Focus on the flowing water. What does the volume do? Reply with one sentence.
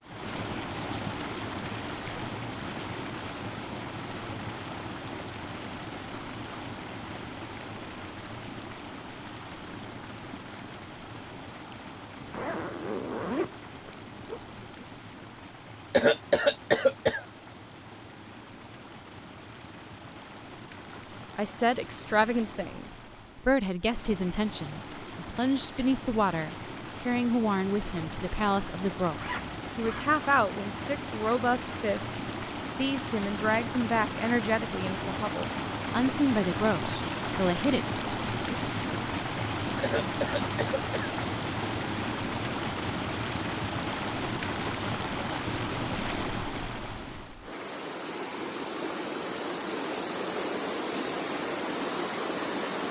The loudness of the flowing water goes down, then up.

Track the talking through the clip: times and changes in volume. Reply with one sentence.
The talking can be heard from 20.9 to 37.8 s, at a steady volume.